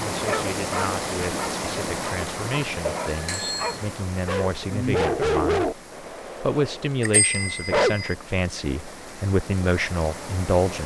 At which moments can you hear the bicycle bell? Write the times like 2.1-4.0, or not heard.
2.8-3.8, 7.0-8.2.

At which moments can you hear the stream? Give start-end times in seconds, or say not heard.
0.0-10.8.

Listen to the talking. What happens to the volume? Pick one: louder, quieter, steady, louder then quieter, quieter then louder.
louder.